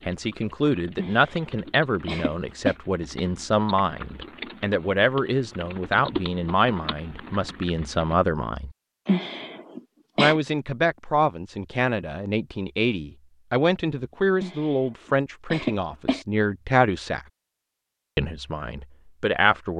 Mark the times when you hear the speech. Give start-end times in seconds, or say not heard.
0.1-8.7, 10.2-17.2, 18.1-19.7.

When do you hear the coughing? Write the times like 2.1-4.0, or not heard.
0.9-2.8, 9.1-10.4, 14.4-16.2.